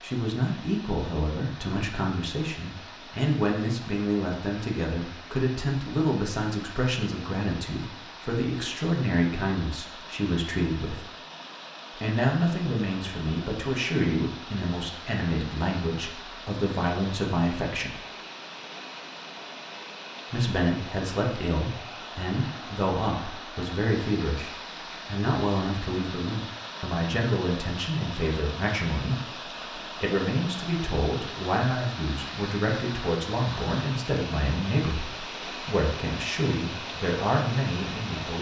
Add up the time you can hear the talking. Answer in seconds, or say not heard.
35 s.